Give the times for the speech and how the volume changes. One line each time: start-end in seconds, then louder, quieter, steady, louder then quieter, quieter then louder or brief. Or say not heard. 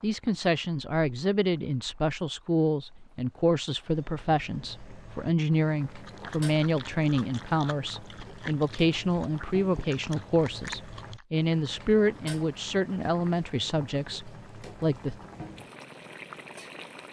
0.0-15.2 steady.